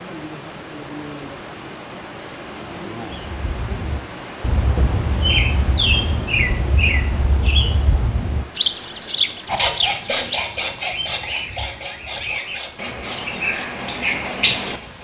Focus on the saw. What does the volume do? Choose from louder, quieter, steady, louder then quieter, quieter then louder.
quieter.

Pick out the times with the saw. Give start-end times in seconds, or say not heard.
9.4-14.9.